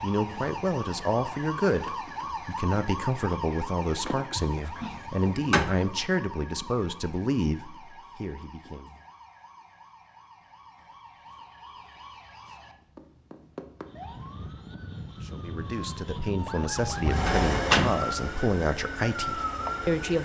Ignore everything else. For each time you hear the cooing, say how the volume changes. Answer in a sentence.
The cooing can't be heard in this clip.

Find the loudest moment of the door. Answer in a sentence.
The volume of the door peaks at 18 seconds.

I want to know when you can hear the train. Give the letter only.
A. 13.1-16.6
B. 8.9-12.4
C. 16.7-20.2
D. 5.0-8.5
C.